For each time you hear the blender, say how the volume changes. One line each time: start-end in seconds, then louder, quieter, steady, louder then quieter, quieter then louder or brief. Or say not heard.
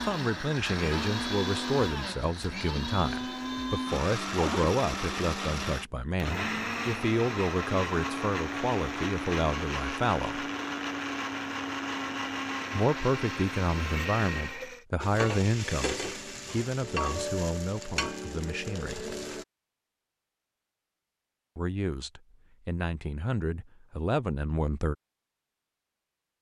0.0-14.8 steady.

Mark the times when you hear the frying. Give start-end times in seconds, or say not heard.
15.0-19.4.